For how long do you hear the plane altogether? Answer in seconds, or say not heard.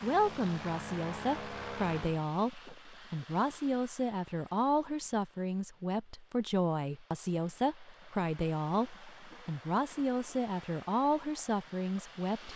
2 s.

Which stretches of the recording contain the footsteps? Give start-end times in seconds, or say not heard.
not heard.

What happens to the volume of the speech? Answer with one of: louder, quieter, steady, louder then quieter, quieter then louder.
steady.